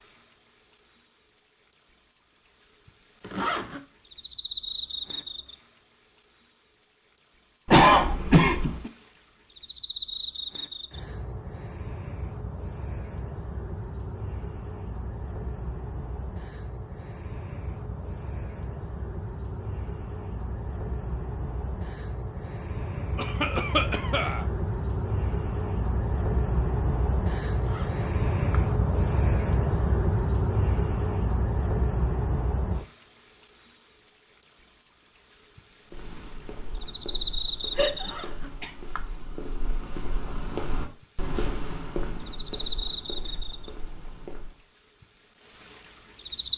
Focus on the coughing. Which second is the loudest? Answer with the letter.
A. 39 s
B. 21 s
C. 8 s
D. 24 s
C.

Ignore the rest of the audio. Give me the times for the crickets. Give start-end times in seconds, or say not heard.
0.0-46.5.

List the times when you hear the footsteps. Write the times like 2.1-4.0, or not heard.
35.9-44.6.